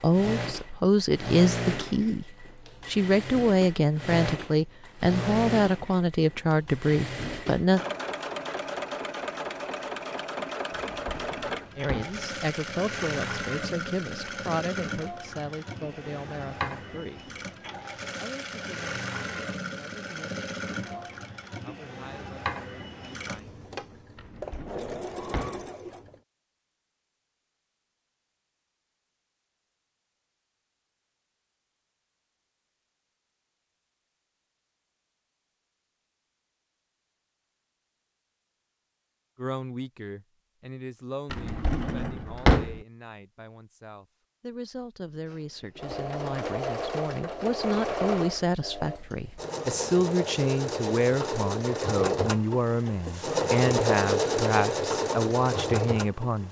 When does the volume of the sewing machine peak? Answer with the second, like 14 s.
54 s.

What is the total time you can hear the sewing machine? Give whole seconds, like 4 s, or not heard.
37 s.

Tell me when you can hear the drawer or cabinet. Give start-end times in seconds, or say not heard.
10.7-12.2, 24.1-25.6, 41.3-42.8.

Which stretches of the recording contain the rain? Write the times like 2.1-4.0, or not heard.
not heard.